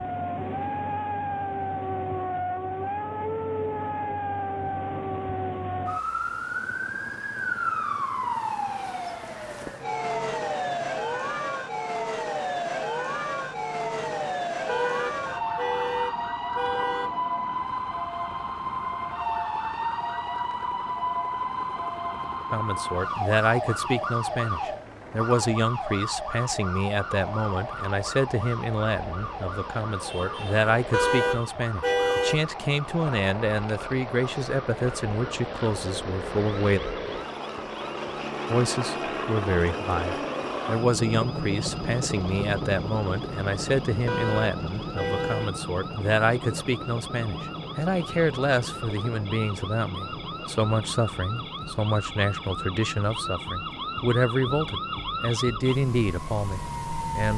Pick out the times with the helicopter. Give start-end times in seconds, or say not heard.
6.0-57.0.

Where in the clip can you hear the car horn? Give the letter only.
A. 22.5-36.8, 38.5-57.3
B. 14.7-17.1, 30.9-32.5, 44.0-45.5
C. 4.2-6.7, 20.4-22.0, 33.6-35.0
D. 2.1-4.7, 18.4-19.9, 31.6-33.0
B.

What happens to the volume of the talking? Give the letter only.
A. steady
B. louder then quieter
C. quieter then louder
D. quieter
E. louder
A.